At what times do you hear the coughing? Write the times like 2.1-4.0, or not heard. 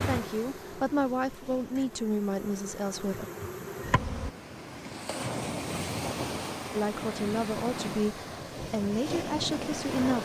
not heard.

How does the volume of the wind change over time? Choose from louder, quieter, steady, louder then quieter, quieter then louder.
louder.